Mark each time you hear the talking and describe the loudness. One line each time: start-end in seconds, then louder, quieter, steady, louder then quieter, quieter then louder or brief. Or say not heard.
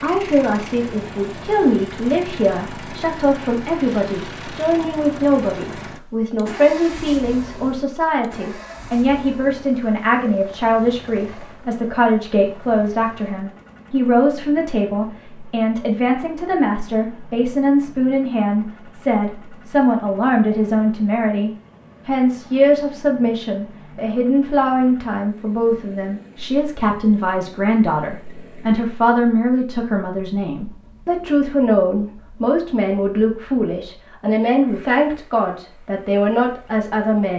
0.0-37.3 steady.